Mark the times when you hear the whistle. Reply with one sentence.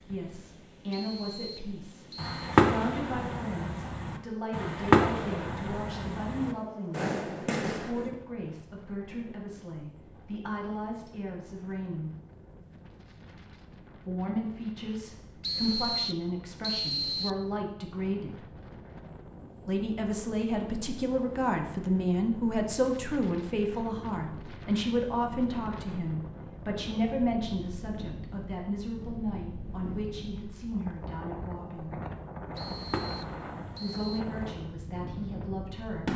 You can hear the whistle from 0.9 to 2.4 s, from 15.4 to 17.4 s and from 32.5 to 34.2 s.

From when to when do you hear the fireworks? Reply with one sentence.
You can hear the fireworks from 2.1 to 8.2 s, from 32.5 to 34.5 s and from 35.4 to 36.1 s.